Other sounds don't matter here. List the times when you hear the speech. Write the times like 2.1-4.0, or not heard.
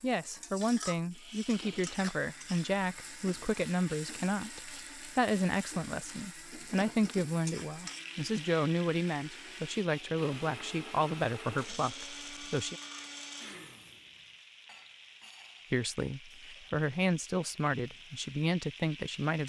0.0-12.8, 15.7-19.4.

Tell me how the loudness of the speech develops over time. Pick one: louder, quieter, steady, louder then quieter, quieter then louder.
steady.